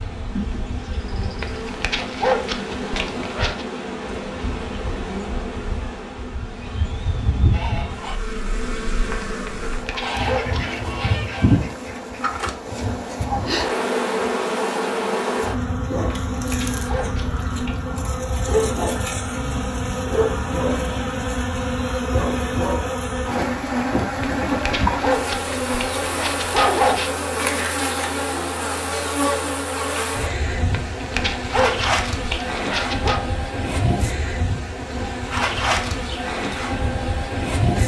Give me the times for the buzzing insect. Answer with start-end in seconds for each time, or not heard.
0.0-37.8.